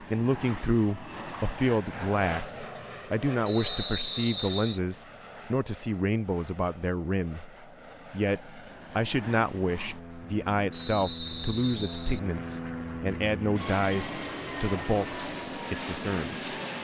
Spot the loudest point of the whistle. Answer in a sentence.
The loudest moment of the whistle is at 4 seconds.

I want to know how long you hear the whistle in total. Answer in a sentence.
You can hear the whistle for 3 seconds altogether.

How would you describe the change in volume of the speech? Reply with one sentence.
The volume of the speech stays about the same.